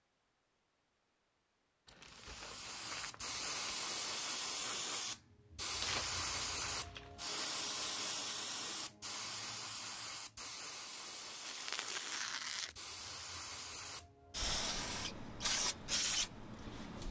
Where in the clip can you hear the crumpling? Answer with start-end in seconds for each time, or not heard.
1.9-3.8, 5.8-7.3, 11.4-12.8.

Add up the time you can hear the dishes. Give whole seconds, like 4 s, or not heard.
not heard.